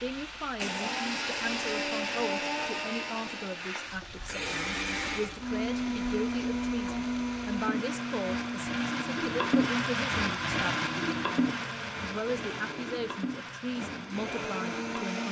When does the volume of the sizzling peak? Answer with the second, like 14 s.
10 s.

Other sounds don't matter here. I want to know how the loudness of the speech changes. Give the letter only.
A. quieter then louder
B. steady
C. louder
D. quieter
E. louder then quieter
B.